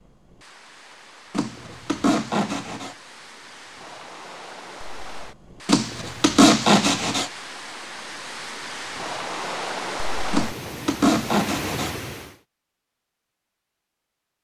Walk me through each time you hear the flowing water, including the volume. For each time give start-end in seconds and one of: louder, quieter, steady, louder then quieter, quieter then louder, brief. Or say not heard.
0.0-12.3 louder.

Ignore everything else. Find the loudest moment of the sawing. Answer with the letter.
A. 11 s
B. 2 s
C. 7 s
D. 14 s
C.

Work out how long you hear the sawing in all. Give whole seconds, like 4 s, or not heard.
5 s.